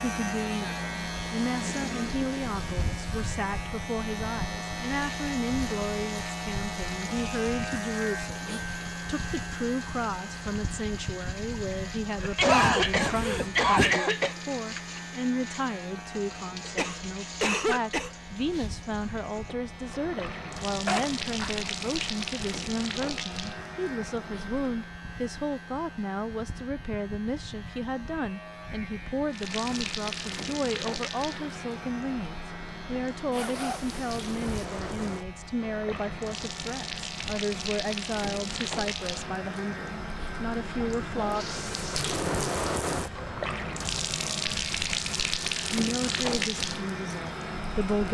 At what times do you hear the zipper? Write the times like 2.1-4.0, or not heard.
12.4-13.9, 20.9-21.5, 33.3-34.6.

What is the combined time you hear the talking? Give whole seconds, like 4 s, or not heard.
44 s.